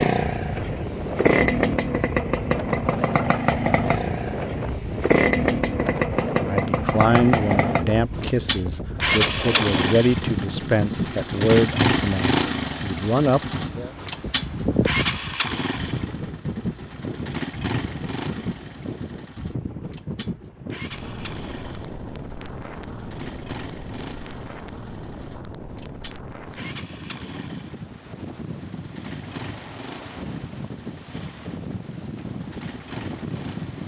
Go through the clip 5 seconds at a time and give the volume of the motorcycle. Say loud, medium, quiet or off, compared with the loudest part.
loud, loud, loud, medium, quiet, quiet, quiet.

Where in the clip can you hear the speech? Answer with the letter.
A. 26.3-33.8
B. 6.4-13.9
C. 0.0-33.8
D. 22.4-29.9
B.